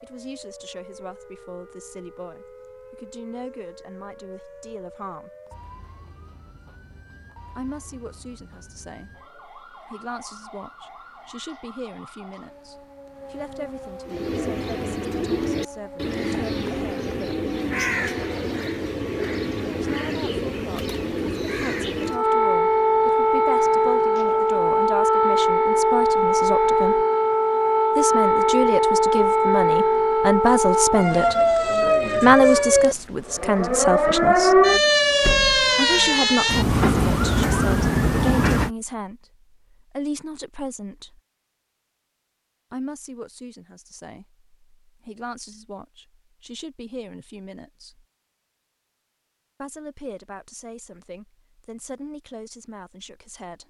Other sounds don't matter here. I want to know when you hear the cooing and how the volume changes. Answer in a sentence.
You can hear the cooing from 14.1 to 24.4 s, getting quieter.